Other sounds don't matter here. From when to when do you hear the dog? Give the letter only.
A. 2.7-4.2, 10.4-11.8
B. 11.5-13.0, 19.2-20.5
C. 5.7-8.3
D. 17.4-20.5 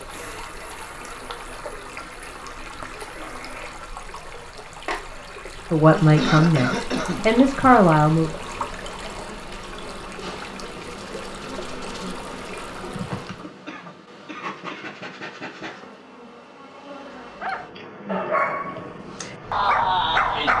D.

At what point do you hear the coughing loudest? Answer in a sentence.
The volume of the coughing peaks at 6 seconds.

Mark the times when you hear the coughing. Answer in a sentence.
The coughing can be heard from 5.9 to 7.4 s and from 13.7 to 14.9 s.